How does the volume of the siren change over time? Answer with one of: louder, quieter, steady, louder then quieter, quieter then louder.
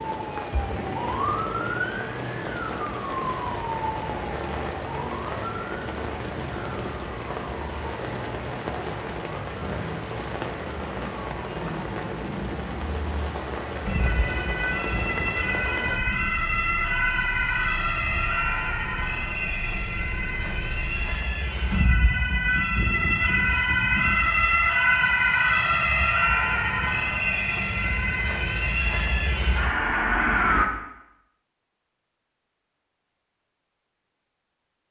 quieter then louder.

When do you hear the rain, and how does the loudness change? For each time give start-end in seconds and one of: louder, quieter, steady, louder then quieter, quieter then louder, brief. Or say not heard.
0.0-21.2 quieter.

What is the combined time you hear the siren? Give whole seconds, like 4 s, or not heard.
31 s.